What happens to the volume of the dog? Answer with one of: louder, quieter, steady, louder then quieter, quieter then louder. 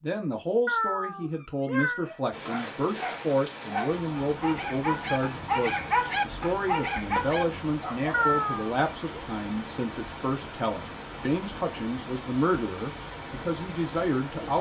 louder.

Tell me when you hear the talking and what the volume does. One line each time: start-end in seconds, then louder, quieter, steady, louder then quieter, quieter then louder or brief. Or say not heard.
0.0-14.5 steady.